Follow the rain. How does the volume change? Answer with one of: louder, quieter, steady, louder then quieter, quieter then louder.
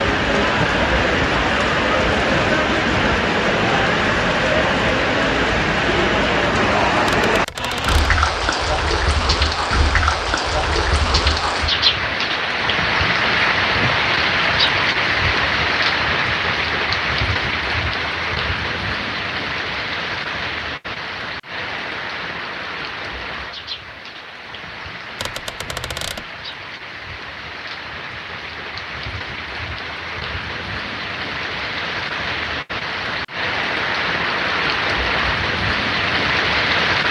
quieter then louder.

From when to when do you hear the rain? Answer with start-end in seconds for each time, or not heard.
0.0-37.0.